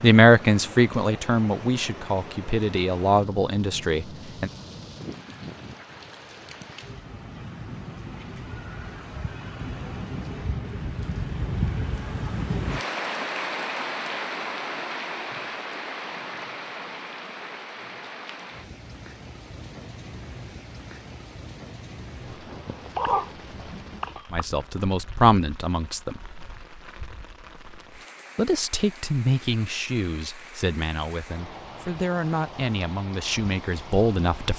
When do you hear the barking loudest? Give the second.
23 s.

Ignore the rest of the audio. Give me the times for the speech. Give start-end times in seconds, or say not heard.
0.0-4.5, 24.3-26.2, 28.4-34.5.